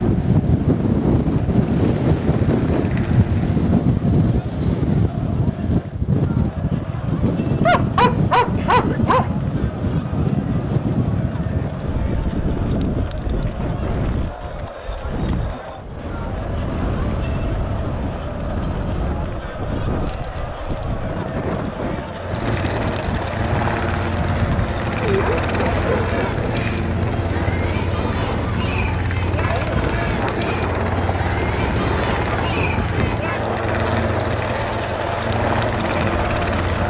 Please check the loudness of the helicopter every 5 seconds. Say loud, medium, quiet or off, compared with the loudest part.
medium, off, off, off, loud, loud, loud, loud.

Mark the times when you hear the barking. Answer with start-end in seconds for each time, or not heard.
7.7-9.3, 25.0-26.4.